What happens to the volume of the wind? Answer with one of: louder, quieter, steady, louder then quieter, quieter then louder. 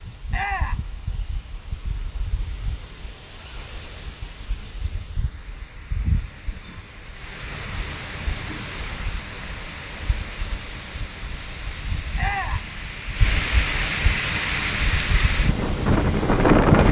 louder.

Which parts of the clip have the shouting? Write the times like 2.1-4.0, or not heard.
0.3-0.8, 12.2-12.7.